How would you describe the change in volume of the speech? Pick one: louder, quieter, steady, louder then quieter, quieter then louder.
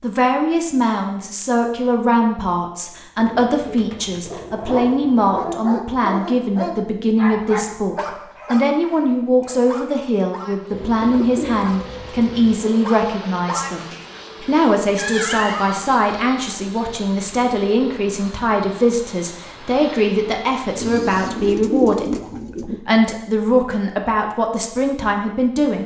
steady.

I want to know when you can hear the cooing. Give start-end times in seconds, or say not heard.
3.1-5.6, 10.7-12.7, 20.8-22.8.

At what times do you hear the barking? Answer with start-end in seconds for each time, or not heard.
4.3-15.8.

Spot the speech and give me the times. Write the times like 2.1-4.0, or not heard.
0.0-25.8.